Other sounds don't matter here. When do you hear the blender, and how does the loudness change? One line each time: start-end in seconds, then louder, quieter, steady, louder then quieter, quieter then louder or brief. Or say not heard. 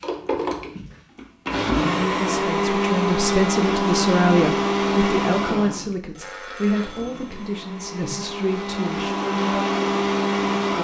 0.0-10.7 quieter then louder.